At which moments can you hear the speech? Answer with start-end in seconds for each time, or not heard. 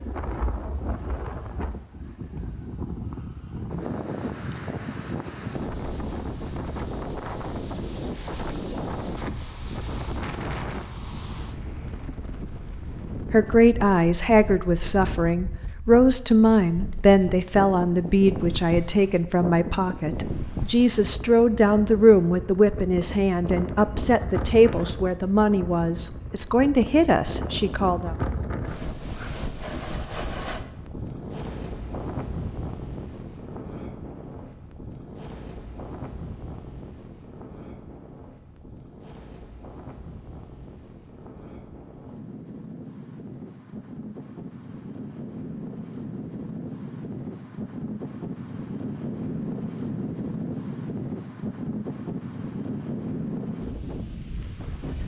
13.3-28.1.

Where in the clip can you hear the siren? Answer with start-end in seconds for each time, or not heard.
not heard.